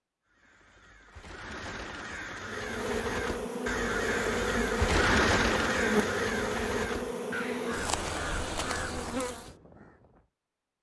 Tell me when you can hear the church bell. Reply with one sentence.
You can't hear the church bell here.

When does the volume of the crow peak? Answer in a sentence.
The volume of the crow peaks at 5 seconds.